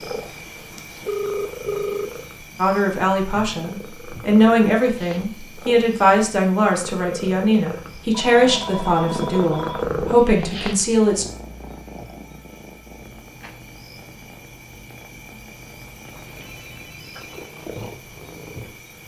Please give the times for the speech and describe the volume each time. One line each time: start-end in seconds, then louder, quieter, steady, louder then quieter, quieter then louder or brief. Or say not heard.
2.5-11.2 steady.